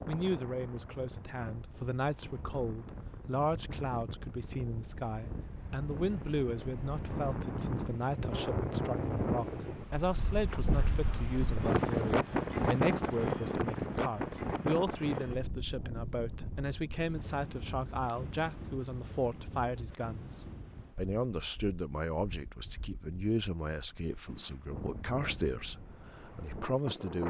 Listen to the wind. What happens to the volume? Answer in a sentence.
The volume of the wind goes up, then down.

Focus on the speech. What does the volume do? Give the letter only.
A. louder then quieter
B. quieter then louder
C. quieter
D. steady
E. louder
D.